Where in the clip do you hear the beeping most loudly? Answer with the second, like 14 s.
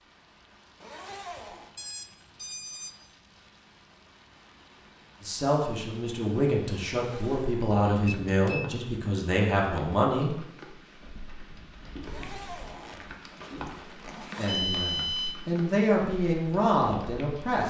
15 s.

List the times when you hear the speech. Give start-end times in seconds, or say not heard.
5.2-10.3, 14.3-17.6.